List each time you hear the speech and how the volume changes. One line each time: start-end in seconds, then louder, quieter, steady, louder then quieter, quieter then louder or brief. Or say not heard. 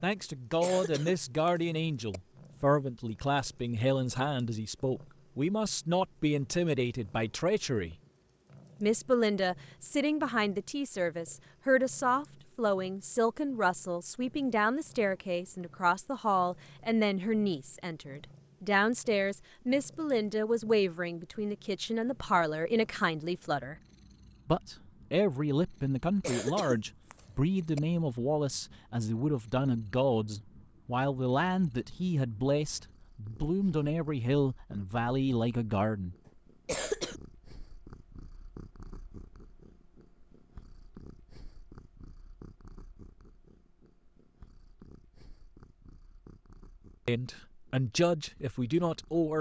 0.0-8.0 steady
8.8-23.8 steady
24.4-36.1 steady
47.0-49.3 brief.